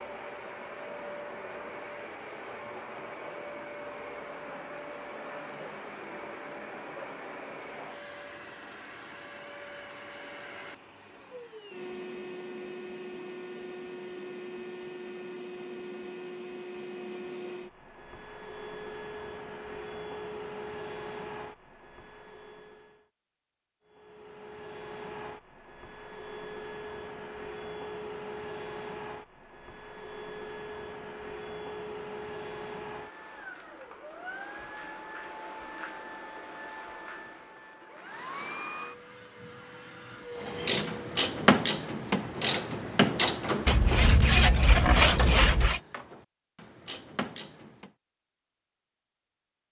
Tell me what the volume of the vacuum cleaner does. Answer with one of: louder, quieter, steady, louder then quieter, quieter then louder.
steady.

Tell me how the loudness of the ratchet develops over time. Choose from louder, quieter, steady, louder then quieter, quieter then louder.
quieter.